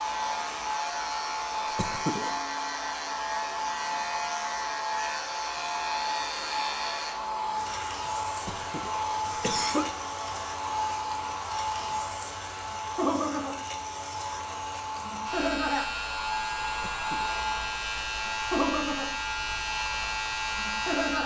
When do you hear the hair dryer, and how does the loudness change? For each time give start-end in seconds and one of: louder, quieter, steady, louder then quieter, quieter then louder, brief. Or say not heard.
0.0-21.2 steady.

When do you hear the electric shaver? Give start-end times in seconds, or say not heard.
0.0-21.2.